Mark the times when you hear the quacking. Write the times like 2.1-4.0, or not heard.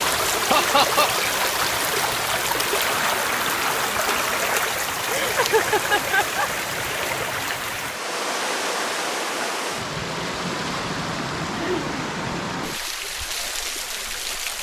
2.9-4.5.